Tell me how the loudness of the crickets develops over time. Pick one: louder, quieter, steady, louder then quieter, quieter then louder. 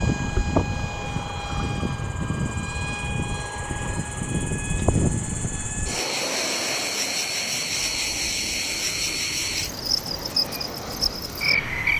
louder.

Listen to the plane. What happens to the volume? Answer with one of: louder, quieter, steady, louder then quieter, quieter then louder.
quieter.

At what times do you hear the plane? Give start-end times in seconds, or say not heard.
0.0-11.9.